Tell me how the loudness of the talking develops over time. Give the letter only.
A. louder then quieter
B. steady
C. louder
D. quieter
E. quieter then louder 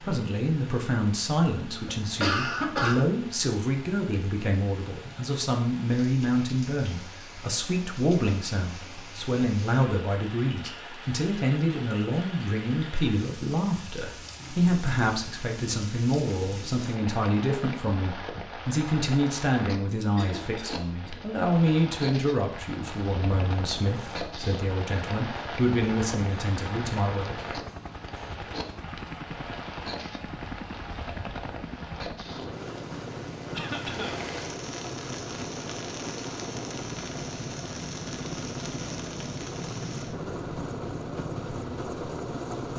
B.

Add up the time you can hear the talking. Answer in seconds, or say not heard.
27 s.